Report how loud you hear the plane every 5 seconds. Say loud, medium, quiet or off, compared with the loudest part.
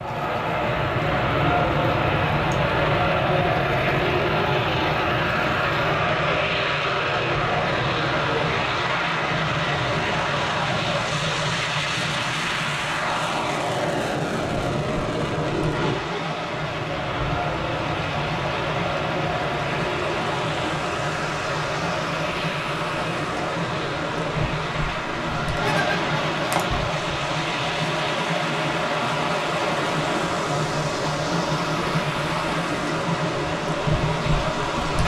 loud, loud, loud, medium, medium, medium, medium.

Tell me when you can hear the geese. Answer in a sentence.
You can hear the geese from 25.1 to 26.8 s.